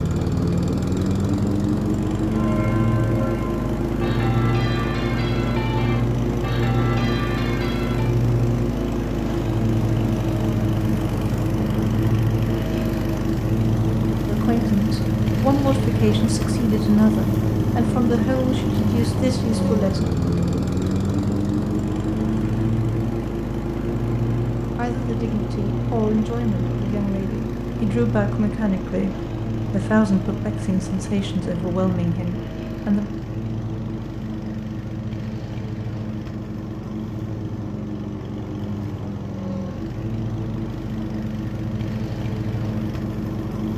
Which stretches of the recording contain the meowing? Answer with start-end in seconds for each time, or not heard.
not heard.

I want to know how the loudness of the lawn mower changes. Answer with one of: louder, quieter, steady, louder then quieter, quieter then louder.
quieter.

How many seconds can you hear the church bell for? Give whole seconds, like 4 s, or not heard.
6 s.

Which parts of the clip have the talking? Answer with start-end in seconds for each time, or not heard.
14.2-20.1, 24.8-33.1.